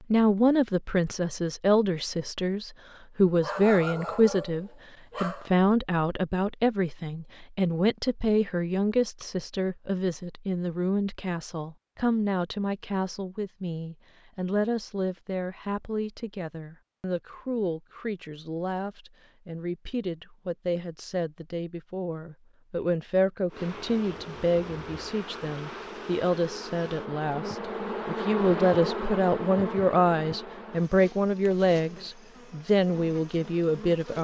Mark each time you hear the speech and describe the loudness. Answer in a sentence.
The speech can be heard from 0.1 to 34.1 s, getting quieter then louder.